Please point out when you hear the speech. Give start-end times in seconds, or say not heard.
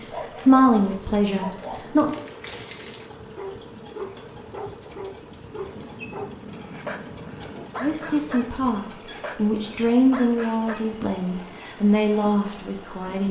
0.0-2.1, 7.8-13.2.